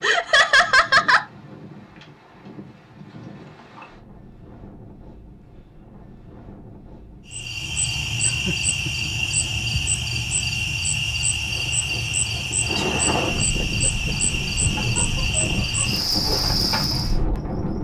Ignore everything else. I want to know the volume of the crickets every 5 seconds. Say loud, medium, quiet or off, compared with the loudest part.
off, loud, loud, loud.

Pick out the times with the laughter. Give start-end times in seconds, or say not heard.
0.0-1.2, 8.2-9.7, 12.7-14.1.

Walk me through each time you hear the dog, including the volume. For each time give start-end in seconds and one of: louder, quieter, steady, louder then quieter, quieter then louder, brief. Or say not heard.
not heard.